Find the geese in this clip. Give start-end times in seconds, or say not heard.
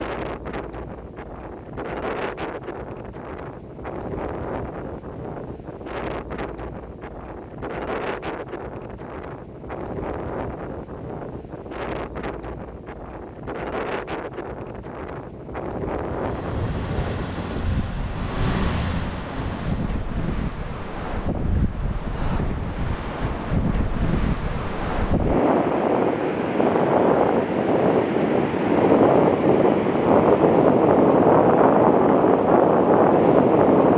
not heard.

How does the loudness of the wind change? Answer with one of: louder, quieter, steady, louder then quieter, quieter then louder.
louder.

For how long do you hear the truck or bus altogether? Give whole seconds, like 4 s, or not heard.
4 s.